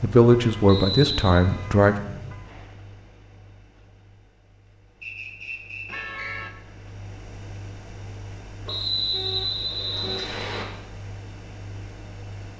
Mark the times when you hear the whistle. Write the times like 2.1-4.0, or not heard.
0.7-1.4, 5.0-6.3, 8.7-10.7.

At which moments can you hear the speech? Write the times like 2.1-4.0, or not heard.
0.0-2.0.